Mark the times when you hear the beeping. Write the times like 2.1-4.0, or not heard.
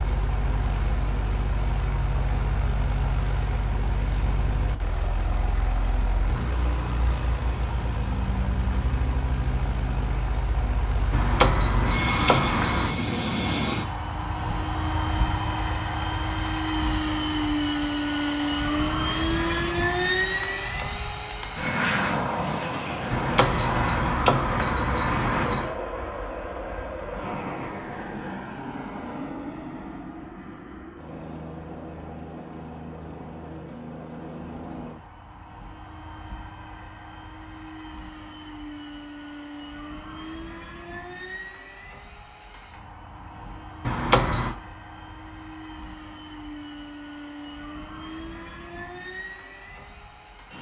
11.1-12.9, 23.1-25.8, 43.9-44.5.